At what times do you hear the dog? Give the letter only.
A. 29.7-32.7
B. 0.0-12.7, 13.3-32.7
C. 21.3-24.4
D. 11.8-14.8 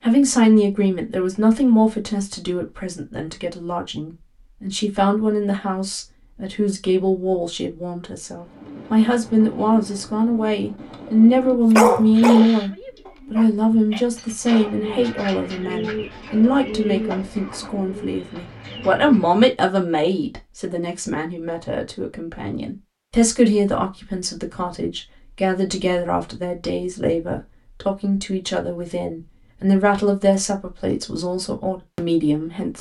D.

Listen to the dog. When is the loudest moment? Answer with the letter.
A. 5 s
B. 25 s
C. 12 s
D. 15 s
C.